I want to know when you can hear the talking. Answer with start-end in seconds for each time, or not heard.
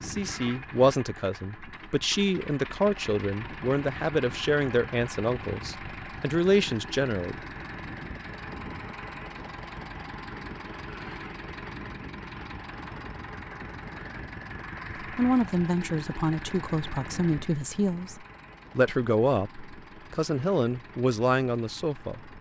0.0-7.4, 15.0-22.3.